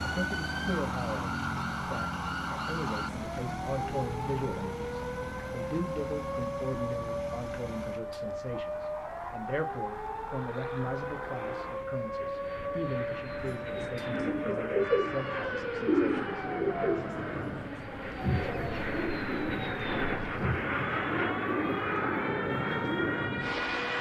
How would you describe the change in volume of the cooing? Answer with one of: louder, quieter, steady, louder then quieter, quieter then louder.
quieter.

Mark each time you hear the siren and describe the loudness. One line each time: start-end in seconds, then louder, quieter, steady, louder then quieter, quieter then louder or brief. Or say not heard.
0.0-23.9 steady.